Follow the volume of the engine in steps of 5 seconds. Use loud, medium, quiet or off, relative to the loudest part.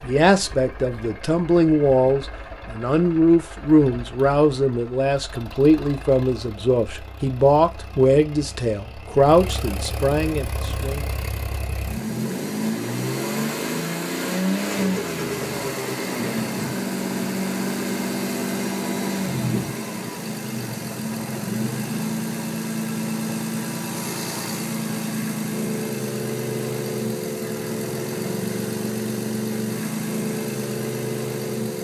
quiet, quiet, loud, loud, loud, loud, loud.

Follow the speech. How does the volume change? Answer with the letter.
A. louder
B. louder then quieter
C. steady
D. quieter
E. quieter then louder
C.